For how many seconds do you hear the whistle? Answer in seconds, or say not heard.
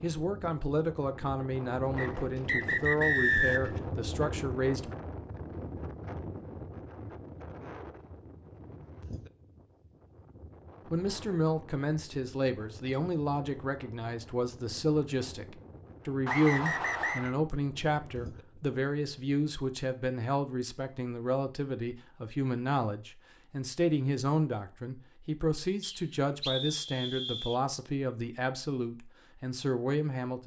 5 s.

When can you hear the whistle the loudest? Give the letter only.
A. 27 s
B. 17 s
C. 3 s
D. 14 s
C.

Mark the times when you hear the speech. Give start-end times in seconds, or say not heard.
0.0-4.9, 10.8-30.4.